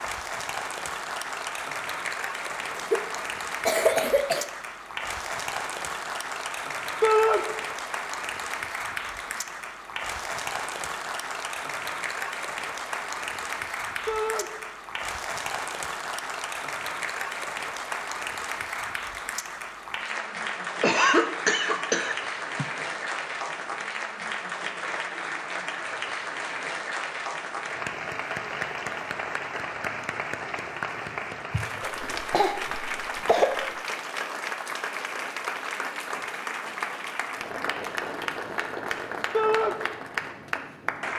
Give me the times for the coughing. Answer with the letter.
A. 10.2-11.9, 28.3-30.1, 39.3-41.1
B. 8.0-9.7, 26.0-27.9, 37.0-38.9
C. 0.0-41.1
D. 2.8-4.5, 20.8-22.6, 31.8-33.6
D.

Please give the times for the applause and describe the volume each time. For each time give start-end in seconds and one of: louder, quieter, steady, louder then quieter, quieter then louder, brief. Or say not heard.
0.0-41.1 steady.